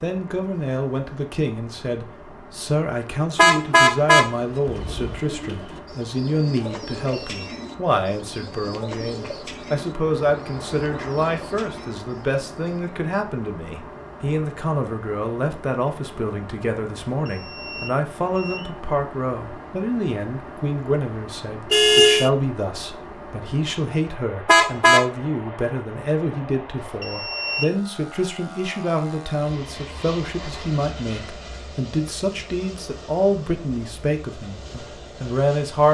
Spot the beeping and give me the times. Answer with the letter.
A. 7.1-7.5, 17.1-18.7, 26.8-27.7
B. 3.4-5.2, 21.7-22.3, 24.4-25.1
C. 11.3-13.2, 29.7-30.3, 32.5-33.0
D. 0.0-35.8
A.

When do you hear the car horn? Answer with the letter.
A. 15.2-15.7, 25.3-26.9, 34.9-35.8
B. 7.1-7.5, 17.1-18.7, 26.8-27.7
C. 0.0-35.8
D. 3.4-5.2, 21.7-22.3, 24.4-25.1
D.